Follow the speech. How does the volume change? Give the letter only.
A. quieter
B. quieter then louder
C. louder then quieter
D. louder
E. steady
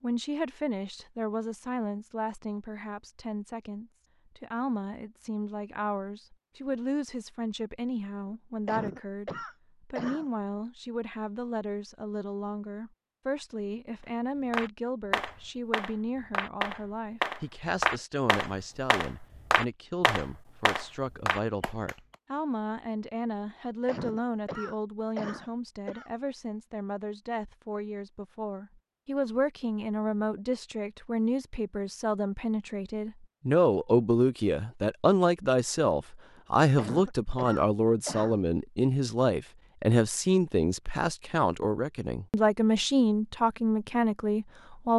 D.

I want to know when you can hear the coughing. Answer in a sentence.
The coughing can be heard from 8.2 to 10.2 s, from 23.4 to 26.1 s and from 36.4 to 38.4 s.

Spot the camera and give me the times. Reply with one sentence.
The camera can't be heard in this clip.